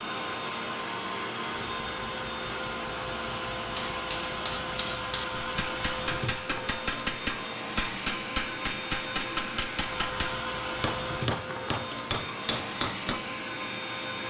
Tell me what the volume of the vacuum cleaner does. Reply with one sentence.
The volume of the vacuum cleaner stays about the same.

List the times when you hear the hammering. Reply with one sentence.
You can hear the hammering from 3.8 to 13.2 s.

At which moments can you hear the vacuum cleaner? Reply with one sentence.
The vacuum cleaner can be heard from 0.0 to 14.2 s.